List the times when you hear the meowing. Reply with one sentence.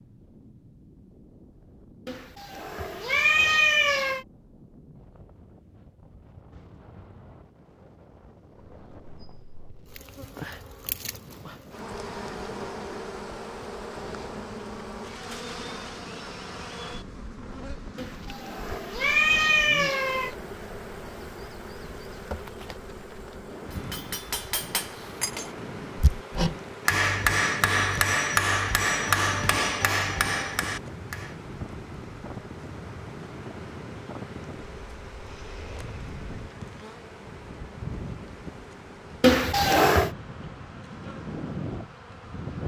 The meowing can be heard from 2.0 to 4.2 s, from 17.9 to 20.4 s and from 39.2 to 40.1 s.